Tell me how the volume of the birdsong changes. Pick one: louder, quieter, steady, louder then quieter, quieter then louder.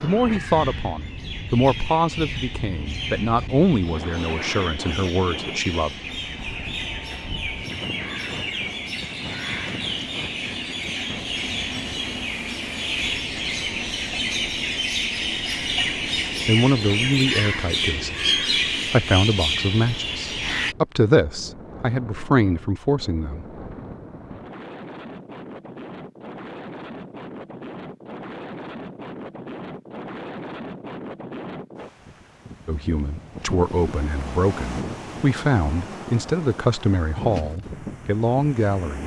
louder.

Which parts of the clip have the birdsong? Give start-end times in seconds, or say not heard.
0.0-20.8.